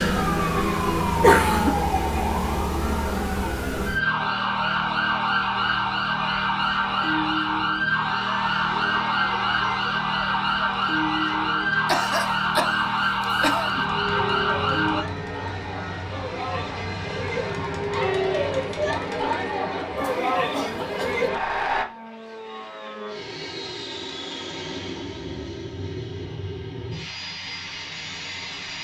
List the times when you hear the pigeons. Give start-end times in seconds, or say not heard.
not heard.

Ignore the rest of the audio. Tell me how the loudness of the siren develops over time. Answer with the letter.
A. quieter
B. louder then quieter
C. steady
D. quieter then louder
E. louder
C.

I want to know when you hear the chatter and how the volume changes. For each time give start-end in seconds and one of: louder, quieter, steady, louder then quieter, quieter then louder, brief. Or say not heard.
0.1-21.9 louder.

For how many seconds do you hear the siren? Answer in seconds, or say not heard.
15 s.